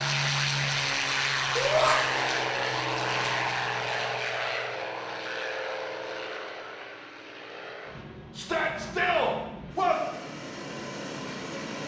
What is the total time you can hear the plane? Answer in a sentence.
You can hear the plane for 12 seconds altogether.